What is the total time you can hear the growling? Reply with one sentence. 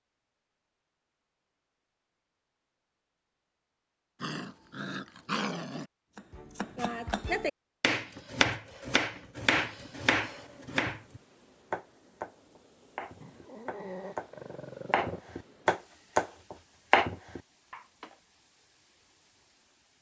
You can hear the growling for 4 seconds altogether.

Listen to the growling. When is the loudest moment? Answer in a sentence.
The loudest moment of the growling is at 5 seconds.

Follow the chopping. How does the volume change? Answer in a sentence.
The volume of the chopping goes down, then up.